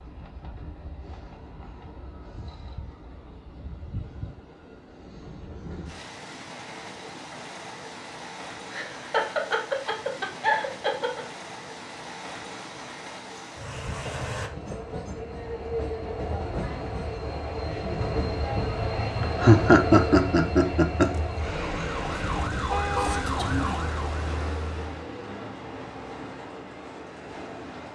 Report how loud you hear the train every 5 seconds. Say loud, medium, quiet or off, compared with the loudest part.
quiet, medium, medium, loud, loud, medium.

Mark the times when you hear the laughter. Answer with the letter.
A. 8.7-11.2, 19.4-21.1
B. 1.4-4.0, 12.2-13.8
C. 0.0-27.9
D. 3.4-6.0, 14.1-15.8
A.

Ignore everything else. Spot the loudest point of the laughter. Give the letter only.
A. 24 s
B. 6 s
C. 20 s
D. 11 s
C.